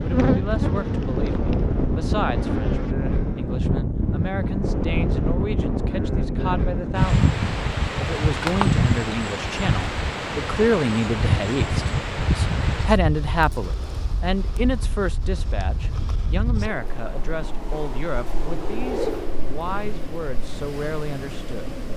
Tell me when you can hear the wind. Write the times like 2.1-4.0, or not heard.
0.0-21.9.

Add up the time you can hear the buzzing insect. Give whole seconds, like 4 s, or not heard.
3 s.